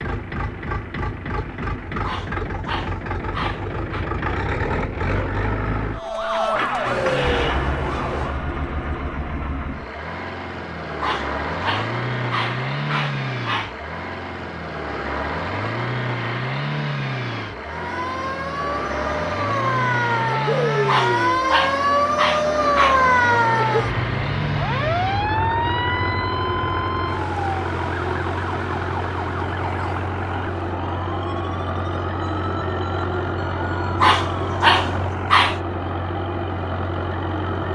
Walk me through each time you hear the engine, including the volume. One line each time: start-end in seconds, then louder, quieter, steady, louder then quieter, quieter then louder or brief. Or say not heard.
0.0-37.7 steady.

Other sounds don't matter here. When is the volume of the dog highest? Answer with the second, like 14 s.
35 s.